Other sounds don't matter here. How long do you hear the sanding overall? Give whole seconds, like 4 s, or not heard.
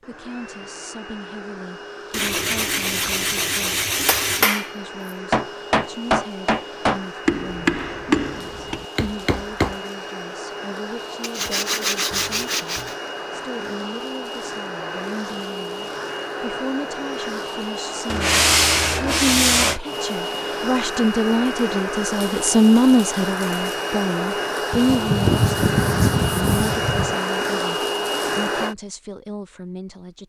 8 s.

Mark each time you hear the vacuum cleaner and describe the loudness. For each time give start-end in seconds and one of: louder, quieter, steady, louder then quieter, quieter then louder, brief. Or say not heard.
0.0-28.8 louder.